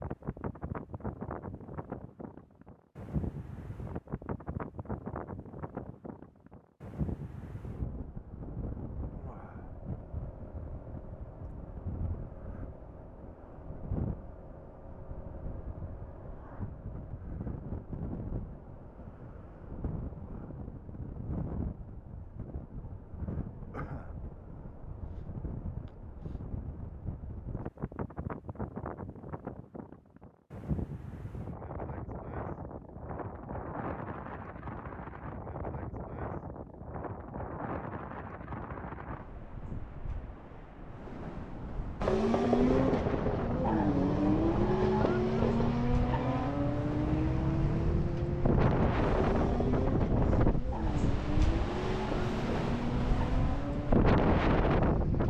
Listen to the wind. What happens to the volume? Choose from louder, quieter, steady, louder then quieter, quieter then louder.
louder.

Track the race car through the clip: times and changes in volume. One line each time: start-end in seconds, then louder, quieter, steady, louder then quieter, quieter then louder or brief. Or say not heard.
42.0-55.2 quieter.